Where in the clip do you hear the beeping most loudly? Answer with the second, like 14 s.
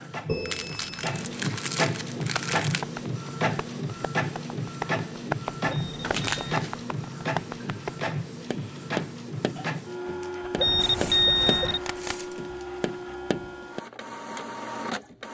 11 s.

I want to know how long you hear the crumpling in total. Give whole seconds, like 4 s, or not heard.
5 s.